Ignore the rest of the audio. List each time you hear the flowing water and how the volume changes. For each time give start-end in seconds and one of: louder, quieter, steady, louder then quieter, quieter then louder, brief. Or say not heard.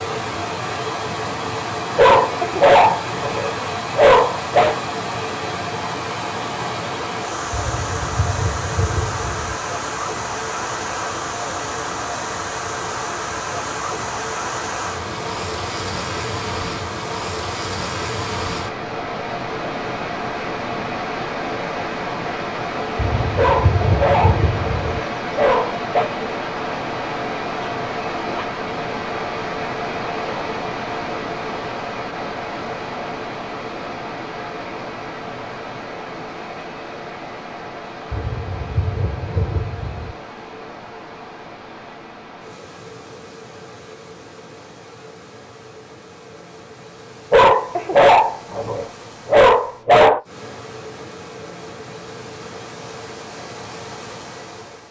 0.0-54.8 quieter.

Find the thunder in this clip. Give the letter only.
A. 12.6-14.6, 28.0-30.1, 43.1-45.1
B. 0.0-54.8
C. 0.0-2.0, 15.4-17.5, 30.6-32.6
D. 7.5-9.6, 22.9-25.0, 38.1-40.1
D.